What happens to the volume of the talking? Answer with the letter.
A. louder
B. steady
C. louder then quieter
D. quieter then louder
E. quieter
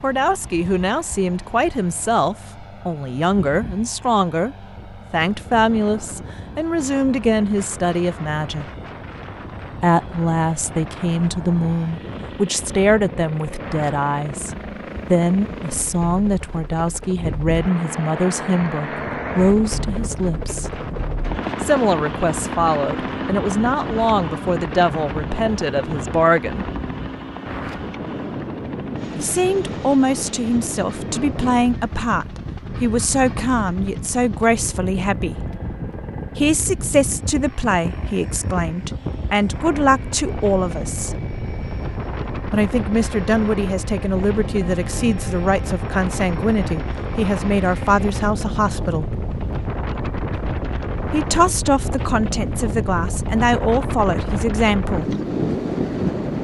B.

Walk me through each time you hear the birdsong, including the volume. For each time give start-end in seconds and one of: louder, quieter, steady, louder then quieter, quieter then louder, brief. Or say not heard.
not heard.